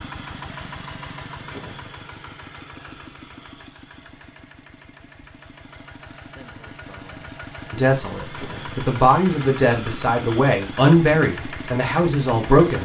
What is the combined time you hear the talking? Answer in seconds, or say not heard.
5 s.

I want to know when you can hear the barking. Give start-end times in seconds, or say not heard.
not heard.